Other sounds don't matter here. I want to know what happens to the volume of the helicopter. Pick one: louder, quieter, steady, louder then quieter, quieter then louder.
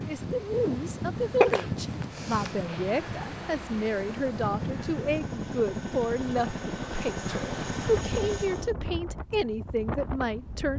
louder.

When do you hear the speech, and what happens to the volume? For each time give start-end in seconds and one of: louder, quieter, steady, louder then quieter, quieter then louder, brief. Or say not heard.
0.0-10.7 steady.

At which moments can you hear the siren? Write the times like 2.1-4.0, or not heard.
not heard.